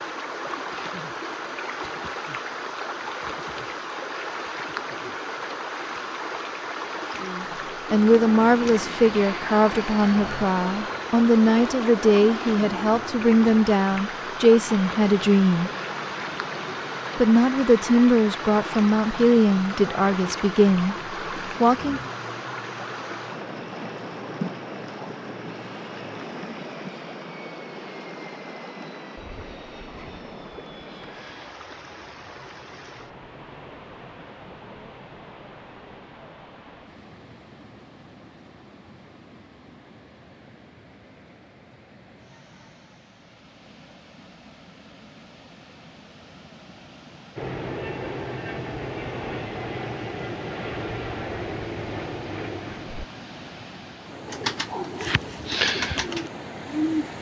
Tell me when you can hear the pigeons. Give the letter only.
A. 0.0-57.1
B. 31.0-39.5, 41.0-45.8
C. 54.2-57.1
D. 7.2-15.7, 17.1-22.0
C.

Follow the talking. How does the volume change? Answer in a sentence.
The volume of the talking stays about the same.